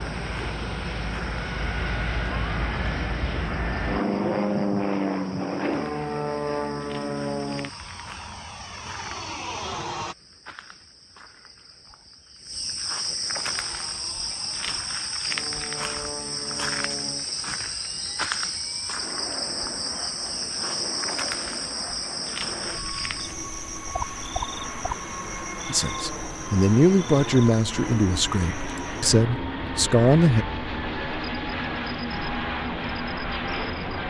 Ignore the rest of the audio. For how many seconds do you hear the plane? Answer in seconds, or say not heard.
31 s.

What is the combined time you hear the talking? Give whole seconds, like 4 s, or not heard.
5 s.